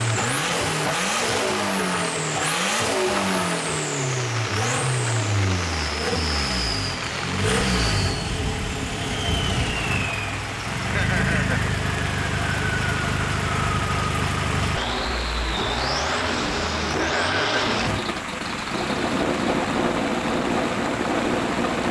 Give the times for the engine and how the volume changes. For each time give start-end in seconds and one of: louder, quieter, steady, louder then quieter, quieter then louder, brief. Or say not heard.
0.0-21.8 steady.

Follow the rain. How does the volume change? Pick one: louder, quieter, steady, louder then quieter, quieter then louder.
steady.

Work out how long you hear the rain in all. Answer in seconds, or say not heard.
22 s.